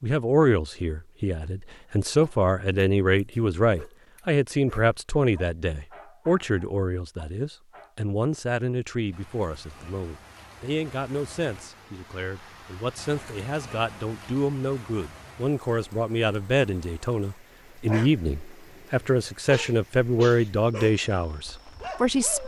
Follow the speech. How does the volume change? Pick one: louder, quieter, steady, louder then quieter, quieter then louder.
quieter then louder.